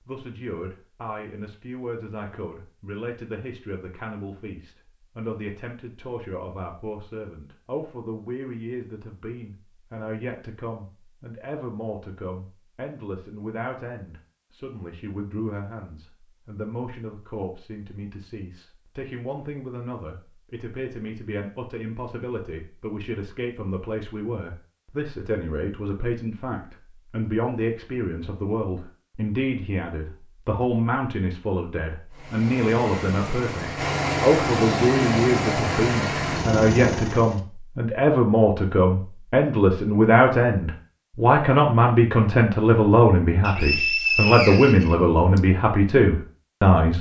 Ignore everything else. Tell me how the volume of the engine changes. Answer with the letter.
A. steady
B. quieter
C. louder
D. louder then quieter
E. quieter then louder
C.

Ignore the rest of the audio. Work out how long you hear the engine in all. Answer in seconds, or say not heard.
5 s.